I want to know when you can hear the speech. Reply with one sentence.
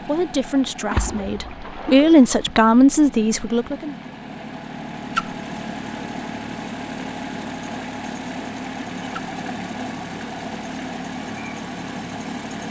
You can hear the speech from 0.0 to 4.0 s.